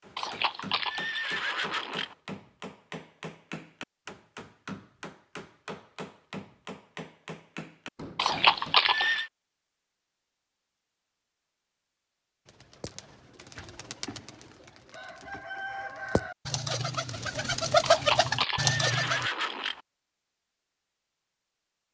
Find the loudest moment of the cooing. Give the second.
18 s.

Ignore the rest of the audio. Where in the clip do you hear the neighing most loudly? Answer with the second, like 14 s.
9 s.